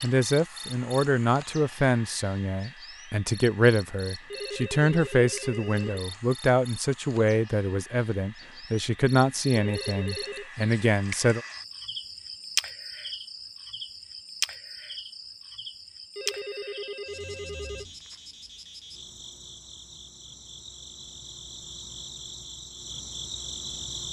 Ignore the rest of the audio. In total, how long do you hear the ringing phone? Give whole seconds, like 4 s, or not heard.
4 s.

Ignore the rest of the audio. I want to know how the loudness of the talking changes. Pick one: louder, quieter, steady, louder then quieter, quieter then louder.
steady.